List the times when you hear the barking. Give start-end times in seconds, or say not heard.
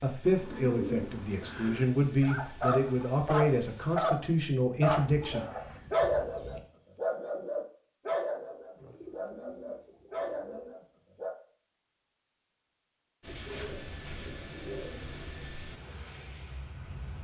2.2-11.3.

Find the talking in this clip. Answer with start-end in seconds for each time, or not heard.
0.0-5.4.